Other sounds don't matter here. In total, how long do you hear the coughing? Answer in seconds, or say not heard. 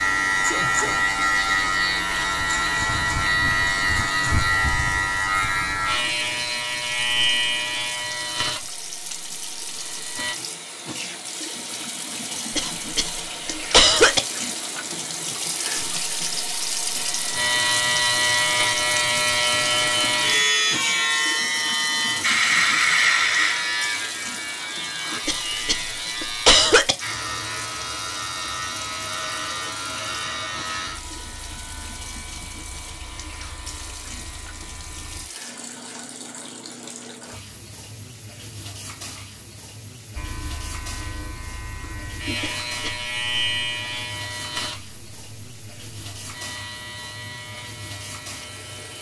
4 s.